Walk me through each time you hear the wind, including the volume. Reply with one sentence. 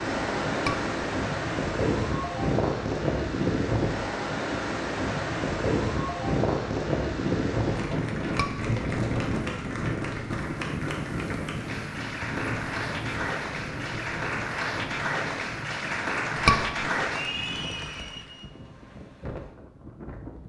You can hear the wind from 0.0 to 20.4 s, getting quieter.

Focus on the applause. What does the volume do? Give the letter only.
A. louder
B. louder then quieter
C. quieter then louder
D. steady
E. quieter
A.